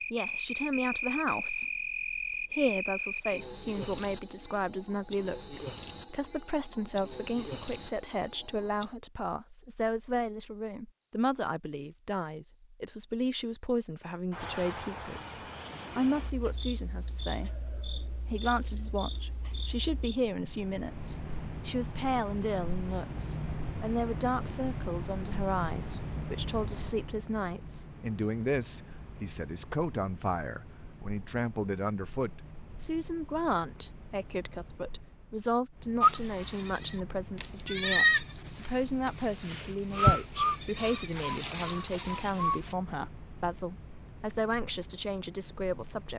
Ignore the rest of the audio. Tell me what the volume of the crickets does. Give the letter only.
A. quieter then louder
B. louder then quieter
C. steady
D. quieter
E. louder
D.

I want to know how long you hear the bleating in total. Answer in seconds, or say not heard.
7 s.